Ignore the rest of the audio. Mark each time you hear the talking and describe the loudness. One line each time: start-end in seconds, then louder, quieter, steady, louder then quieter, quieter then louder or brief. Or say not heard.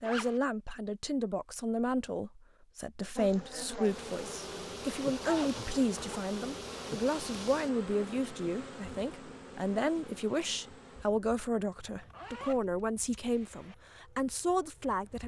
0.0-15.2 steady.